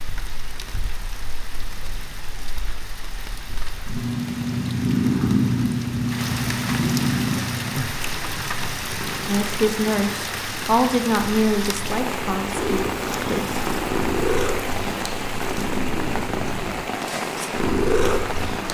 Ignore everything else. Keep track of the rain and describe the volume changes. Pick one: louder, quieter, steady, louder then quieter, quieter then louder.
louder.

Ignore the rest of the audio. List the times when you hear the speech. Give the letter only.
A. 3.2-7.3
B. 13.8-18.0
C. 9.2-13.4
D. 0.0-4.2
C.